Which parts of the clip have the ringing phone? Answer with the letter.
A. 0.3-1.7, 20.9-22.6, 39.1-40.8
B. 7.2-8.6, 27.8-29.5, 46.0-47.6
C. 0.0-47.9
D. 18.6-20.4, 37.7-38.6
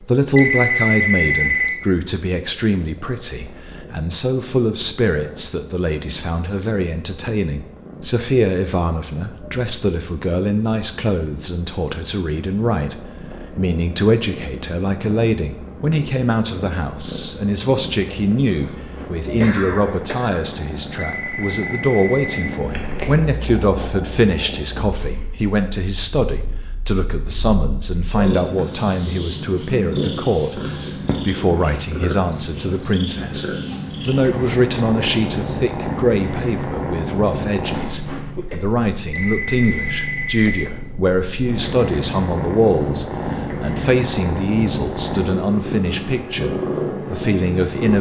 A.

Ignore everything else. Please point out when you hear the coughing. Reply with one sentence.
You can hear the coughing from 18.6 to 20.4 s and from 37.7 to 38.6 s.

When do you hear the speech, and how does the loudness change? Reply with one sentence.
You can hear the speech from 0.0 to 47.9 s, at a steady volume.